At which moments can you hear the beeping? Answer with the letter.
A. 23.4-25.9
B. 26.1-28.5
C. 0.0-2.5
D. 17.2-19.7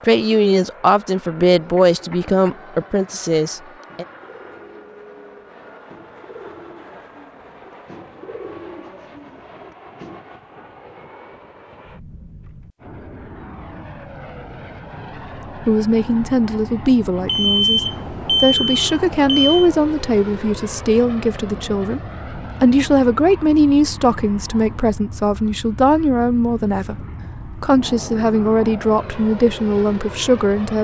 D.